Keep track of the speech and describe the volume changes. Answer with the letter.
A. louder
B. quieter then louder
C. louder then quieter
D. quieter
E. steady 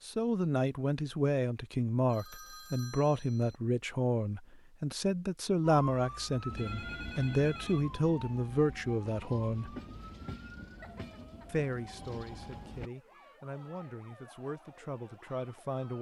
D.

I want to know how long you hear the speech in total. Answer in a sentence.
You can hear the speech for 14 seconds altogether.